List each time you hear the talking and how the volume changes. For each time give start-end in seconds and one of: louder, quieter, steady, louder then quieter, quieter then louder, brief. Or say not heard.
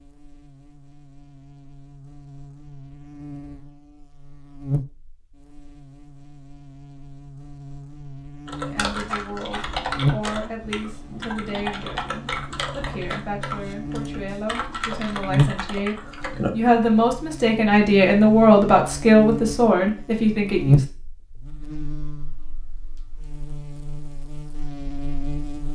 8.7-20.9 louder.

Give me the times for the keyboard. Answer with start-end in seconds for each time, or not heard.
8.4-16.9.